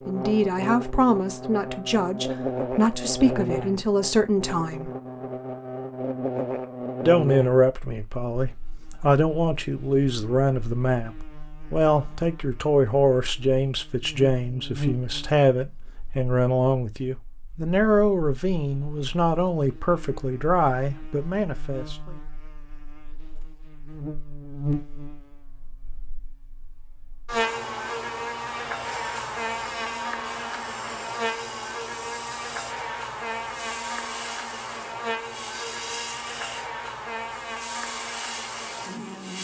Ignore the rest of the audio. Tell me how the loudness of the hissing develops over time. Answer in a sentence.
The loudness of the hissing goes up.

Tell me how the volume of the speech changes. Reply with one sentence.
The volume of the speech stays about the same.